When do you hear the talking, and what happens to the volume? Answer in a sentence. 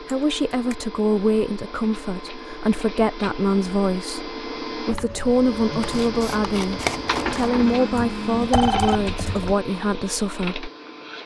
You can hear the talking from 0.0 to 10.7 s, at a steady volume.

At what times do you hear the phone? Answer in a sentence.
You can hear the phone from 7.6 to 9.1 s.